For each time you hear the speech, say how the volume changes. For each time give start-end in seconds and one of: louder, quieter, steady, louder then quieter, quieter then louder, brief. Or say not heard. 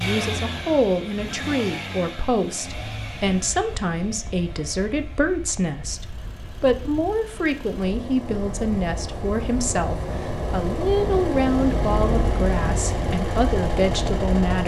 0.0-14.6 steady.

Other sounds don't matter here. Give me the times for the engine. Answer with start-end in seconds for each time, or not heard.
0.0-14.6.